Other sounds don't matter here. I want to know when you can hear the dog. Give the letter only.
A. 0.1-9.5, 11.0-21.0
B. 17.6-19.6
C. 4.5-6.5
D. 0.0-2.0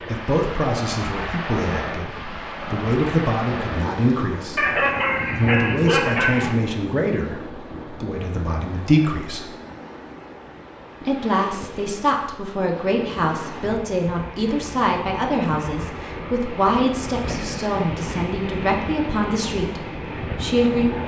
C.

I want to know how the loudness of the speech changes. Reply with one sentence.
The loudness of the speech stays about the same.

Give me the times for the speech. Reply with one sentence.
The speech can be heard from 0.1 to 9.5 s and from 11.0 to 21.0 s.